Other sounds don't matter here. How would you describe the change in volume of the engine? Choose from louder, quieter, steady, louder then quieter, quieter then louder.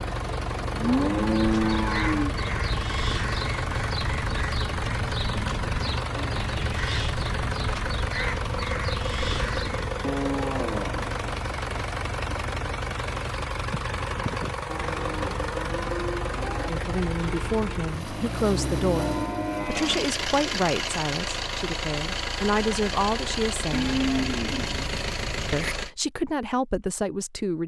steady.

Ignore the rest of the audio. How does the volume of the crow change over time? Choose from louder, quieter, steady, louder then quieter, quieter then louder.
steady.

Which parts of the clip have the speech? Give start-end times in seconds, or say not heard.
16.6-23.9, 25.5-27.6.